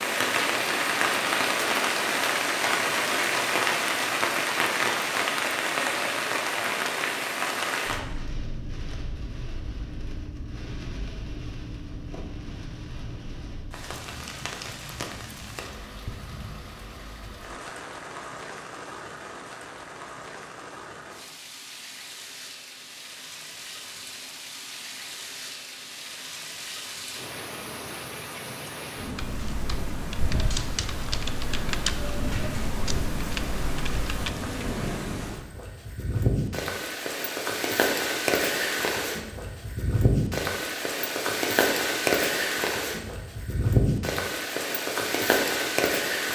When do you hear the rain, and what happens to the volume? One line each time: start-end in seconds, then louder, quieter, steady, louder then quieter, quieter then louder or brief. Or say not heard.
0.0-46.3 quieter then louder.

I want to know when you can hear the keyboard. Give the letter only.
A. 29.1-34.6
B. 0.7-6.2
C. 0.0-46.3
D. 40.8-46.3
A.